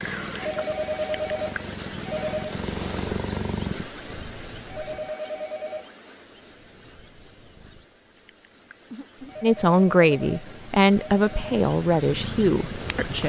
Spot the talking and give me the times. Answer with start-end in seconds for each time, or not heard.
9.4-13.2.